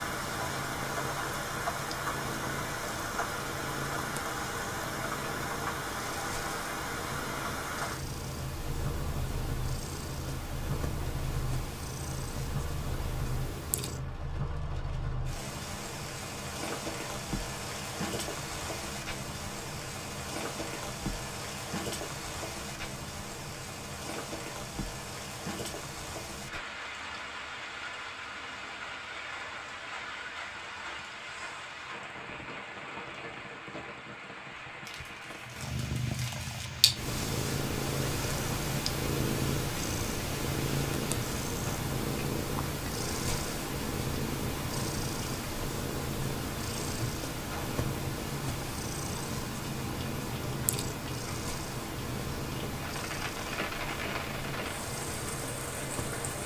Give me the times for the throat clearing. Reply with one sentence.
The throat clearing can't be heard in this clip.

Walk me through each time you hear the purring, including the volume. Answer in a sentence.
You can hear the purring from 0.0 to 14.3 s, at a steady volume; and from 35.5 to 56.4 s, getting quieter.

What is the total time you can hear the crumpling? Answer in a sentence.
The crumpling can be heard for 2 seconds in total.